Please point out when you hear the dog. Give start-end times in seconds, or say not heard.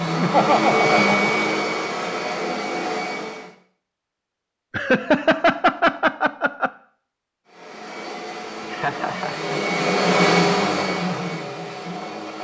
not heard.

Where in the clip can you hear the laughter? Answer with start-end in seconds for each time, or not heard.
0.1-1.4, 4.7-6.7, 8.7-9.4.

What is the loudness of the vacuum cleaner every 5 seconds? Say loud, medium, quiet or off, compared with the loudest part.
loud, medium, loud.